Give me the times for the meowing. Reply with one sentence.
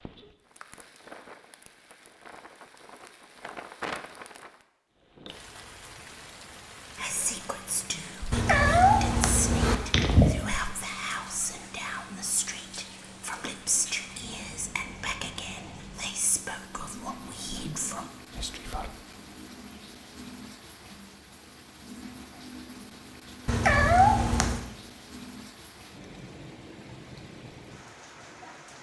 The meowing can be heard from 8.3 to 10.3 s and from 23.4 to 24.6 s.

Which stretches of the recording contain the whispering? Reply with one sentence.
The whispering can be heard from 7.0 to 18.9 s.